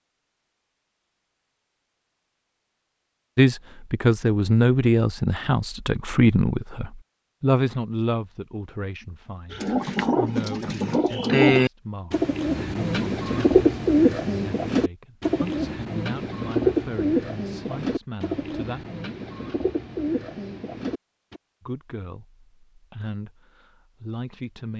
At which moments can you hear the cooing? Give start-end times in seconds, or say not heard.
9.5-21.4.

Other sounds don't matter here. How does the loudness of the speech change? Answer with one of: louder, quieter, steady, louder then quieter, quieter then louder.
quieter.